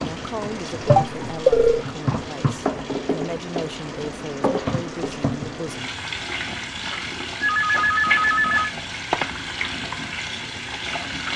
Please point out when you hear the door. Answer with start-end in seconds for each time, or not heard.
not heard.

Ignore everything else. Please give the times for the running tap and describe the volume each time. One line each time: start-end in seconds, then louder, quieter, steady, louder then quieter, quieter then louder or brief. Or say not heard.
0.0-11.3 steady.